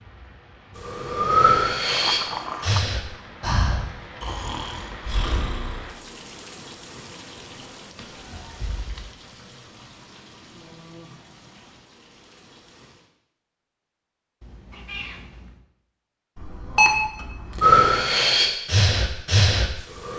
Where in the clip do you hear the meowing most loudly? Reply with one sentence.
The loudest moment of the meowing is at 2 seconds.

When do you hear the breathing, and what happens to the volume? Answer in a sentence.
You can hear the breathing from 0.8 to 5.8 s, getting quieter; and briefly from 17.6 to 20.1 s.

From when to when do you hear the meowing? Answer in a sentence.
The meowing can be heard from 1.9 to 2.8 s, from 8.0 to 9.2 s and from 14.4 to 15.6 s.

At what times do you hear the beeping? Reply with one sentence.
You can hear the beeping from 16.4 to 17.7 s.